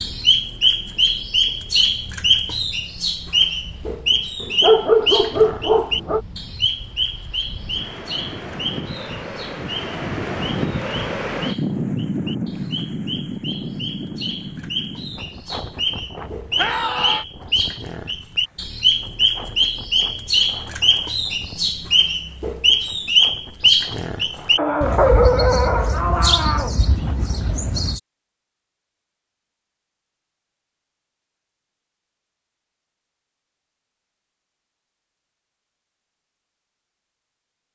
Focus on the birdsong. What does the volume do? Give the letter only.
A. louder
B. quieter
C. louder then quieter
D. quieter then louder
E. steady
D.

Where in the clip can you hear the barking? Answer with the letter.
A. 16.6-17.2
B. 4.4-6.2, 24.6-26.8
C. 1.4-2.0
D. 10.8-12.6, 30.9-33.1
B.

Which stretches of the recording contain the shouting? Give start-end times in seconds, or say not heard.
16.6-17.2.